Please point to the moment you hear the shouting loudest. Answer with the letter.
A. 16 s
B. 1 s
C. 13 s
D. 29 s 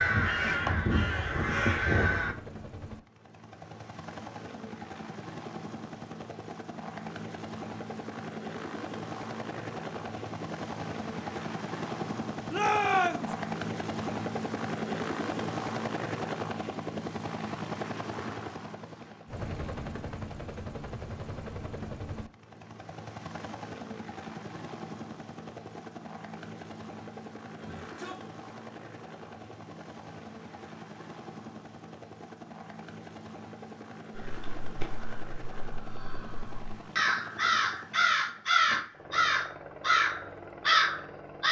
C.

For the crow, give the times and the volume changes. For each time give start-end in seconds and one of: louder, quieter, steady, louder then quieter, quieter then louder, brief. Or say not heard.
0.0-2.4 brief
34.1-41.4 louder.